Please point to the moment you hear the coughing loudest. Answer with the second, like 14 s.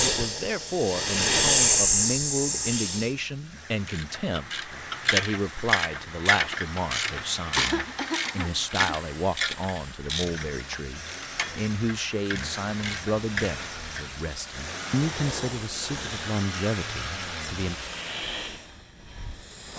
8 s.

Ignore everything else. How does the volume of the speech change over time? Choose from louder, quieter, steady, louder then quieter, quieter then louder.
steady.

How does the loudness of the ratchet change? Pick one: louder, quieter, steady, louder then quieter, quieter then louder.
quieter.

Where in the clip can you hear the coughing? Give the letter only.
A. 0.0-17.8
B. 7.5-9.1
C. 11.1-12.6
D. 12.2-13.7
B.